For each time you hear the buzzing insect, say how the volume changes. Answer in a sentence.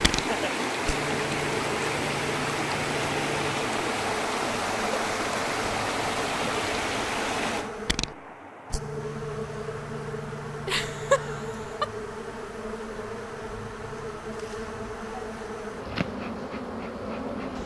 The buzzing insect can be heard from 0.0 to 17.6 s, at a steady volume.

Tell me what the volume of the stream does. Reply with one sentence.
The loudness of the stream goes down.